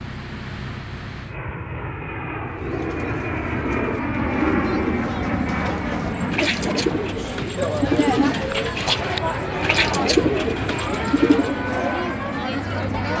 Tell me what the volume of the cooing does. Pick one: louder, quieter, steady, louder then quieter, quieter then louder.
louder.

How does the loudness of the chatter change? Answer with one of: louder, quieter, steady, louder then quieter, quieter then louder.
louder.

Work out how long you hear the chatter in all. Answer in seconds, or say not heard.
9 s.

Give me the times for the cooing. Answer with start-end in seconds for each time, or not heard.
2.5-11.6.